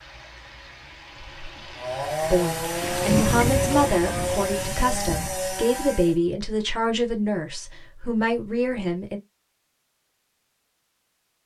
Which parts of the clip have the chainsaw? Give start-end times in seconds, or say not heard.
1.8-6.2.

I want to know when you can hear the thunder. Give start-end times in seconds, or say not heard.
2.8-5.4.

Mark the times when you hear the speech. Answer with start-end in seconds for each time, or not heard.
2.3-9.2.